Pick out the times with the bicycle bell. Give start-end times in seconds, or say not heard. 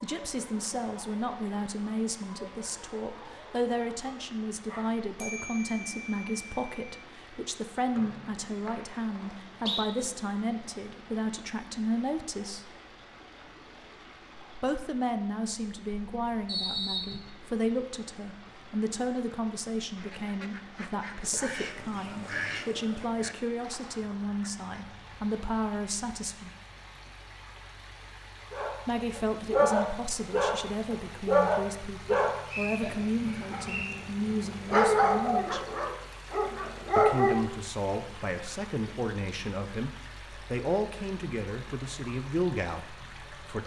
5.2-7.0.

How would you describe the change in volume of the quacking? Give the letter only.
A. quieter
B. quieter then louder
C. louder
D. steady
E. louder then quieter
E.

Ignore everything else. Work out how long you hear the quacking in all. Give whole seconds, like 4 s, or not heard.
5 s.